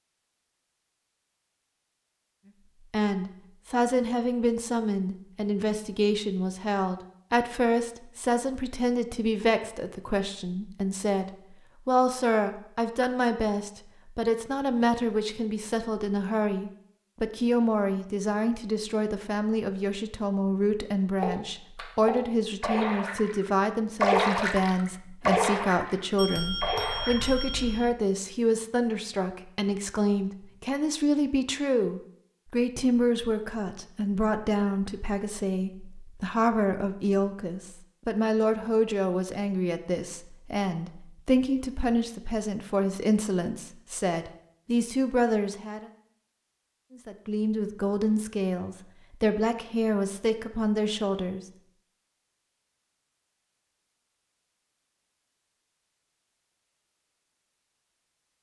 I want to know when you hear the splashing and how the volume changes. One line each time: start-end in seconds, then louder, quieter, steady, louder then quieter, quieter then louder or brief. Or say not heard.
21.1-27.4 louder then quieter.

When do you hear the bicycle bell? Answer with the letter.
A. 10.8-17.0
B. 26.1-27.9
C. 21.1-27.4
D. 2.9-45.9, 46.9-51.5
B.